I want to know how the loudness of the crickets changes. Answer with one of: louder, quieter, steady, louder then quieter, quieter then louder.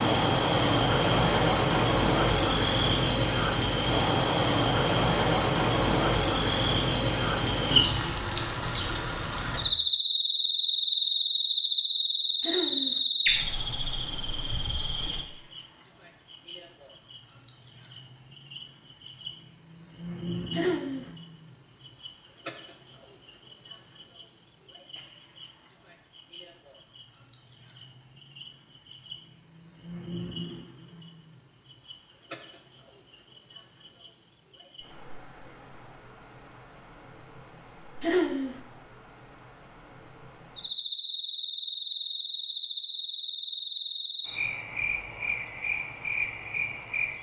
quieter.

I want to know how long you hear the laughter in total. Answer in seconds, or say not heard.
2 s.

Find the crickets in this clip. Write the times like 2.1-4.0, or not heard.
0.0-47.1.